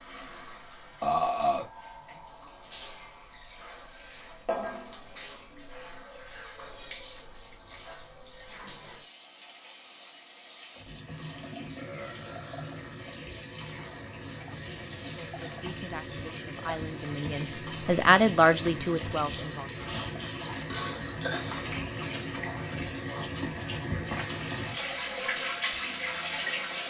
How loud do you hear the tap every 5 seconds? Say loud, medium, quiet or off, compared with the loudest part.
medium, quiet, medium, medium, loud, loud.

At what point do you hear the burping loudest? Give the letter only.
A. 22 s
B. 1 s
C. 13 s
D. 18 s
B.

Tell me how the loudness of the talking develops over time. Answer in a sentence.
The loudness of the talking goes up, then down.